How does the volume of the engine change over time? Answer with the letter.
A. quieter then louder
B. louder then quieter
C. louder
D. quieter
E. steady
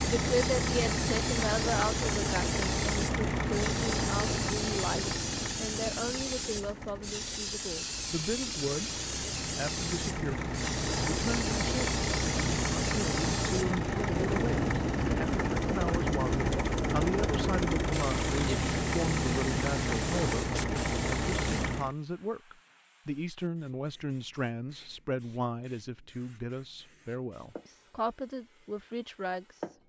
A.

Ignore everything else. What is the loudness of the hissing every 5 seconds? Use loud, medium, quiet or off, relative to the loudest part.
loud, loud, loud, loud, medium, quiet.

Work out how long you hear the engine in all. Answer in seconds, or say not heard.
22 s.